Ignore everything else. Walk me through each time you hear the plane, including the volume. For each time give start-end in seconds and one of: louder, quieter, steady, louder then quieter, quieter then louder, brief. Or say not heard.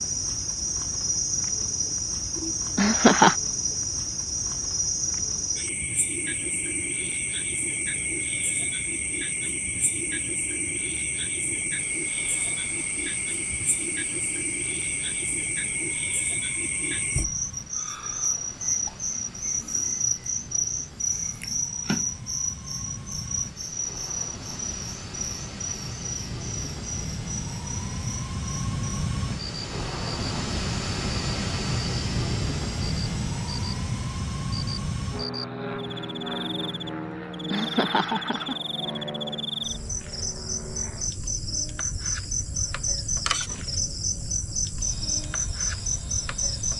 0.0-46.7 louder then quieter.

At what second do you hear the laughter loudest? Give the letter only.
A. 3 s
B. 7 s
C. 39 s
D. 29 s
A.